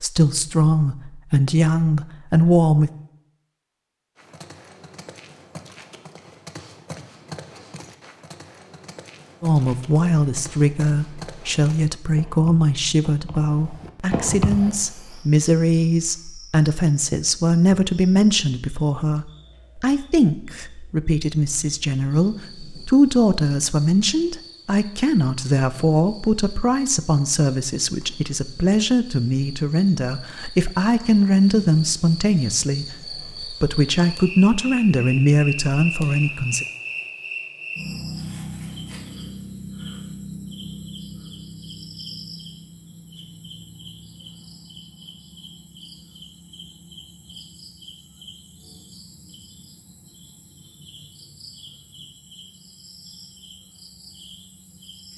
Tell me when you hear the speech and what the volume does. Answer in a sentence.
The speech can be heard briefly from 0.0 to 2.9 s; and from 9.4 to 36.6 s, at a steady volume.